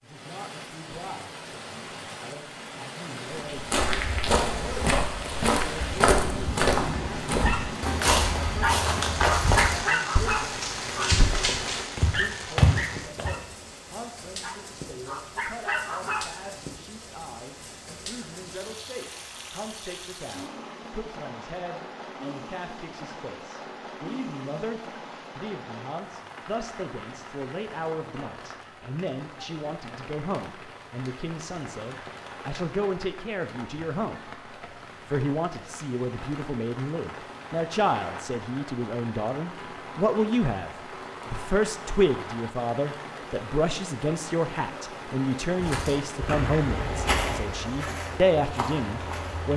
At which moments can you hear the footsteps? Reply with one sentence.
The footsteps can be heard from 3.5 to 13.3 s and from 45.6 to 49.5 s.